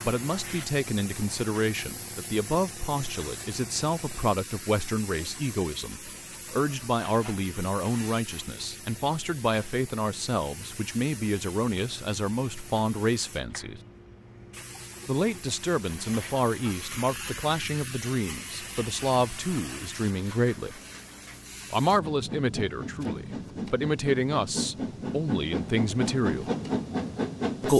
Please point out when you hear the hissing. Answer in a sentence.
The hissing can be heard from 0.0 to 27.7 s.